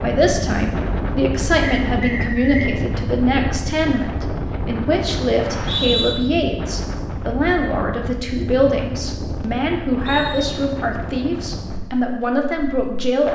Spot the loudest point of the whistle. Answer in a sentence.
The loudest moment of the whistle is at 6 seconds.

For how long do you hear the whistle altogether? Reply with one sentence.
The whistle can be heard for 2 seconds in total.